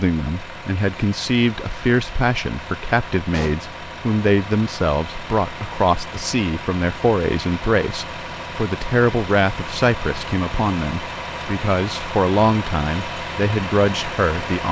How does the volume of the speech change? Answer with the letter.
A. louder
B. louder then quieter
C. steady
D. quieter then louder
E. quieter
C.